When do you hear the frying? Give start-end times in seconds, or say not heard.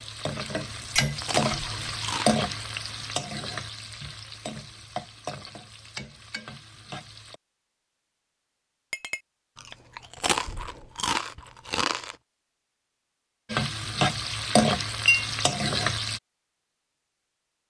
0.0-7.4, 13.5-16.2.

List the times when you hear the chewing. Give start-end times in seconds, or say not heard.
0.6-2.5, 9.6-12.2.